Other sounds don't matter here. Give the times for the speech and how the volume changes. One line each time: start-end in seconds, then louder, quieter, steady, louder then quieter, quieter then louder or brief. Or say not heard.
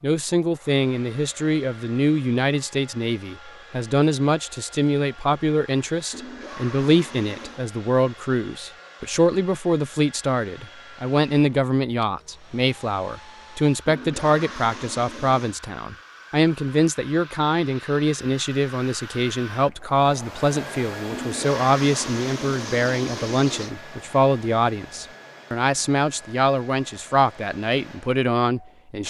0.0-29.0 steady.